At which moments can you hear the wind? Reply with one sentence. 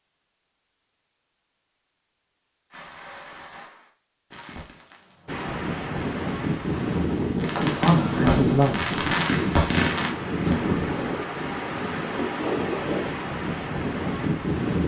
The wind can be heard from 5.2 to 14.8 s.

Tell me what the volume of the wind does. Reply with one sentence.
The loudness of the wind stays about the same.